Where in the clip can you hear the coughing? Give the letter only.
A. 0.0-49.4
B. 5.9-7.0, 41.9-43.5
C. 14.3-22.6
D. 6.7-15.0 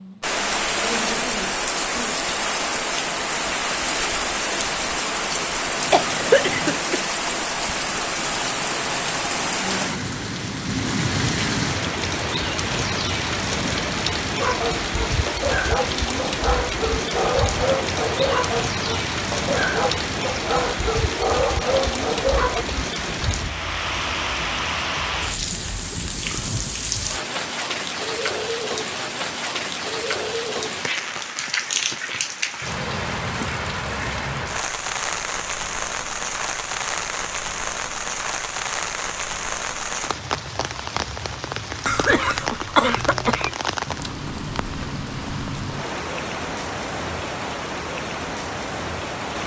B.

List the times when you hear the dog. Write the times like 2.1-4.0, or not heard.
14.3-22.6.